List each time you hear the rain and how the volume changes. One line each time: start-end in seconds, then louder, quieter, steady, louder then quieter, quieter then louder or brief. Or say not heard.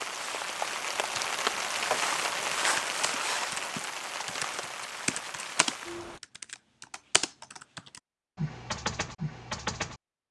0.0-6.2 quieter.